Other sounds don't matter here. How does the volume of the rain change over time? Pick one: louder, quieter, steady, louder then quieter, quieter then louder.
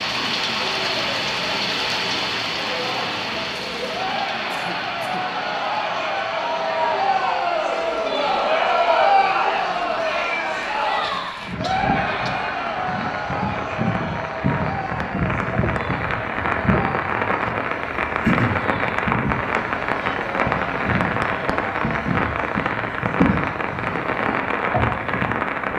quieter then louder.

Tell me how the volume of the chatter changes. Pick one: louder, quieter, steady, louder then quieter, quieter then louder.
louder then quieter.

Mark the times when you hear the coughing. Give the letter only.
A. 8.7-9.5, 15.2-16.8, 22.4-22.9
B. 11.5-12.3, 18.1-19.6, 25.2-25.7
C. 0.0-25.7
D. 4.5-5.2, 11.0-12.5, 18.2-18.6
D.